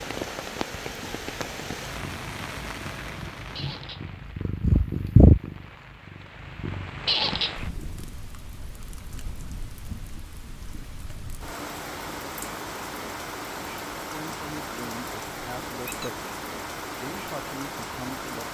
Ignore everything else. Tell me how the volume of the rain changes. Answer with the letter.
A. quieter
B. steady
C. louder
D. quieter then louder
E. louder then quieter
D.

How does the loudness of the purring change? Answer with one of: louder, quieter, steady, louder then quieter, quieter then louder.
louder then quieter.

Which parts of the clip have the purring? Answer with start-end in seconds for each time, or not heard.
0.0-8.2.